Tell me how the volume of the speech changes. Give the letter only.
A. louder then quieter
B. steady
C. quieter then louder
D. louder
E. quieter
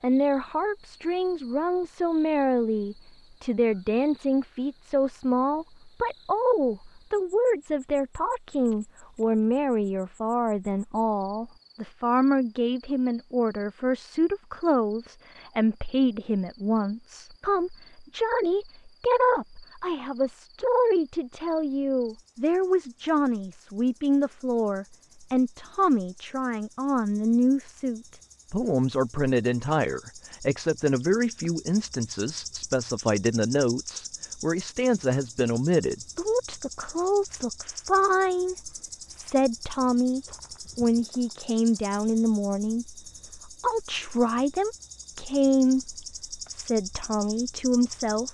B.